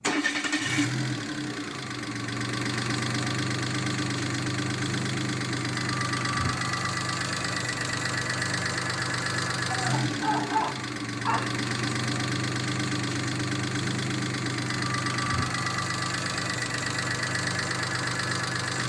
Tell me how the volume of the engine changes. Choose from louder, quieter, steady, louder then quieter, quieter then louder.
steady.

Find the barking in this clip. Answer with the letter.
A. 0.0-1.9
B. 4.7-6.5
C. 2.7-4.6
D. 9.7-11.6
D.